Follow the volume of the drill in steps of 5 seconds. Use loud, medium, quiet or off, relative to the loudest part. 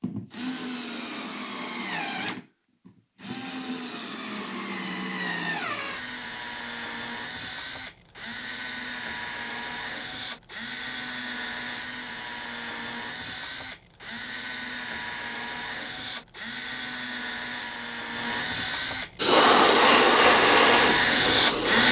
quiet, quiet, quiet, medium, loud.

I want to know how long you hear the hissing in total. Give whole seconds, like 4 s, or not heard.
3 s.